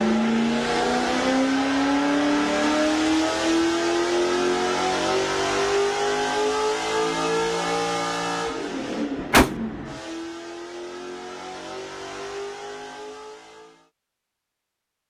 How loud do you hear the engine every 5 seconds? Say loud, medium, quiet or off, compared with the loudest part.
loud, loud, quiet.